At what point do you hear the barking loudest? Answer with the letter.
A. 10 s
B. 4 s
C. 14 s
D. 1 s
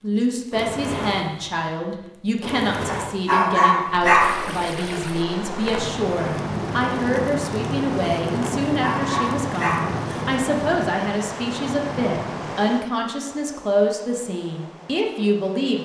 B.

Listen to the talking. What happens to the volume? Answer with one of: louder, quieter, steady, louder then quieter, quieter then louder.
steady.